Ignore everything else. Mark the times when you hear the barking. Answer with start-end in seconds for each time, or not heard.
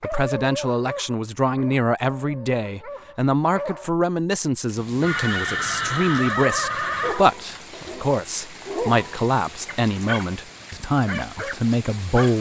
0.0-3.9, 7.0-12.3.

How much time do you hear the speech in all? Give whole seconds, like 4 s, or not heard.
12 s.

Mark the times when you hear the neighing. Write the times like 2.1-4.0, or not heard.
5.0-7.2.